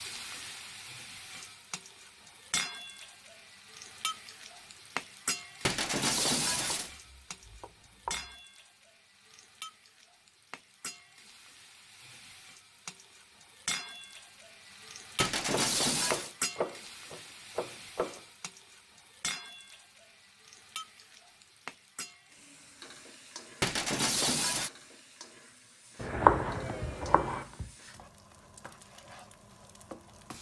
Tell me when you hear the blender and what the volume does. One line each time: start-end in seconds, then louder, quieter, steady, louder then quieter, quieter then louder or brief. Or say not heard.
not heard.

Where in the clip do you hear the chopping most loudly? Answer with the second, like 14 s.
26 s.